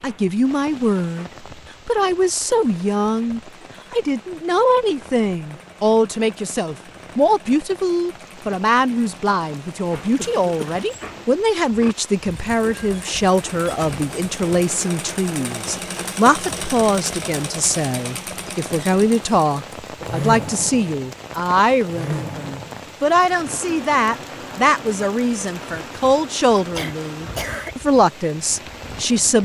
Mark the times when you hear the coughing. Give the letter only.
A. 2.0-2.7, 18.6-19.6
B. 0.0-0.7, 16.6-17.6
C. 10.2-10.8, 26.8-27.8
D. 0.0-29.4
C.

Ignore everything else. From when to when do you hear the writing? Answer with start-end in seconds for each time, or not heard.
not heard.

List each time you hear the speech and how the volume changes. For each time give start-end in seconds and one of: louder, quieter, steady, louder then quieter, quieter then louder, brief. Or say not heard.
0.0-29.4 steady.